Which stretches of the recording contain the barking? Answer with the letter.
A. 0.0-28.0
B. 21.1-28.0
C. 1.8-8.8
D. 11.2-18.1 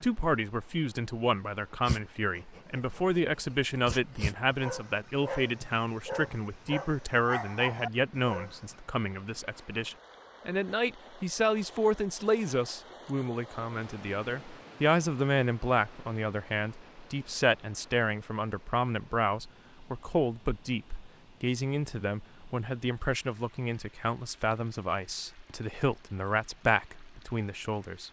C.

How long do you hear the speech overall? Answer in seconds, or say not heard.
28 s.